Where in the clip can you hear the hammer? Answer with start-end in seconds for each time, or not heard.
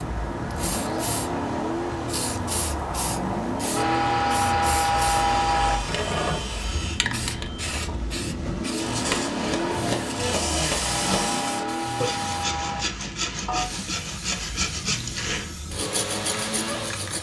9.0-11.4.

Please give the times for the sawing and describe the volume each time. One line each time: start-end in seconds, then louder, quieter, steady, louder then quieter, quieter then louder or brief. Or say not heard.
5.1-7.0 brief
8.8-17.1 steady.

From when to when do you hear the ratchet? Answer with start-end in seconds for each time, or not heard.
3.8-5.8, 10.8-12.8.